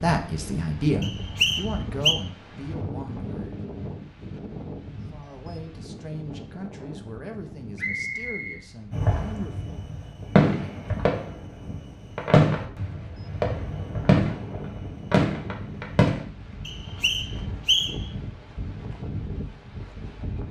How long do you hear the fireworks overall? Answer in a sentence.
You can hear the fireworks for 7 seconds altogether.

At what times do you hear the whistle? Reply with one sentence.
The whistle can be heard from 1.0 to 2.1 s, from 7.8 to 9.3 s and from 16.6 to 18.1 s.